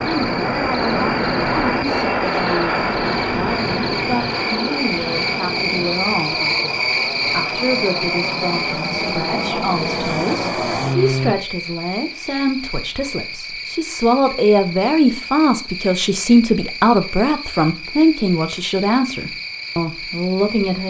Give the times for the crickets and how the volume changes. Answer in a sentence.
You can hear the crickets from 0.0 to 20.8 s, getting louder then quieter.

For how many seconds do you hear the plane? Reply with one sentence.
The plane can be heard for 11 seconds in total.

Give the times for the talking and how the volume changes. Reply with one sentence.
You can hear the talking from 0.0 to 20.8 s, getting louder.